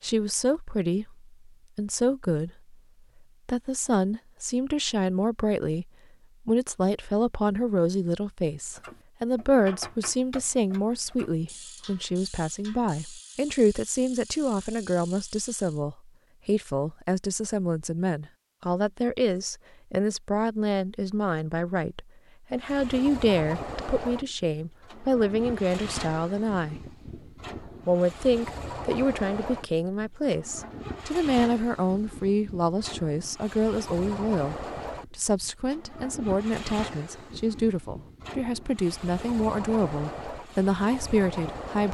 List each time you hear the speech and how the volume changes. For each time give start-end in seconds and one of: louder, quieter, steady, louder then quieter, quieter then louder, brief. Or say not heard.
0.0-2.5 brief
3.5-5.8 brief
6.5-26.8 steady
27.9-41.8 steady.